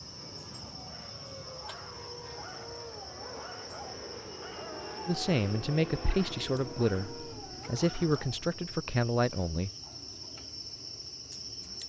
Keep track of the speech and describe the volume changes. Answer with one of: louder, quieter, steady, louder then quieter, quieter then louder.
quieter then louder.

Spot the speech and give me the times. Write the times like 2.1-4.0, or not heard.
5.0-9.7.